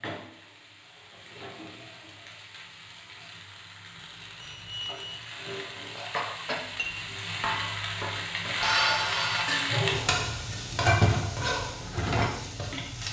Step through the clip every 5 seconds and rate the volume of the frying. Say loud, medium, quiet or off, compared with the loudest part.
quiet, loud, loud.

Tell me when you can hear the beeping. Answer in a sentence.
The beeping can be heard from 4.4 to 5.2 s.